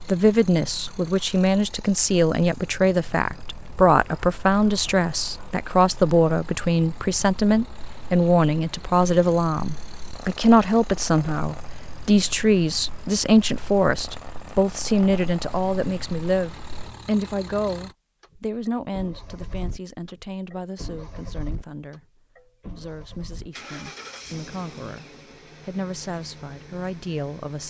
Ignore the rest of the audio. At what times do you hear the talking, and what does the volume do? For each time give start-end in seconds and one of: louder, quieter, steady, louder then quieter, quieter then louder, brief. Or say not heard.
0.1-27.6 quieter.